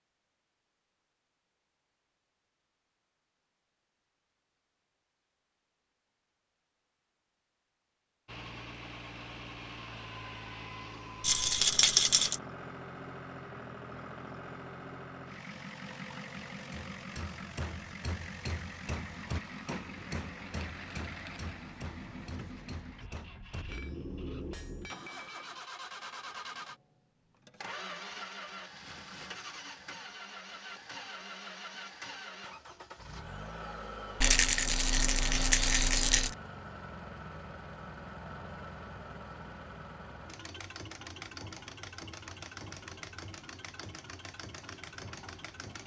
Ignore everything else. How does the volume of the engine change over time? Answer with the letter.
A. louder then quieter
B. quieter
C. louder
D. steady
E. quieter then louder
D.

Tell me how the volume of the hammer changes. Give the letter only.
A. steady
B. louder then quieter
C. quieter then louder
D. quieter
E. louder
C.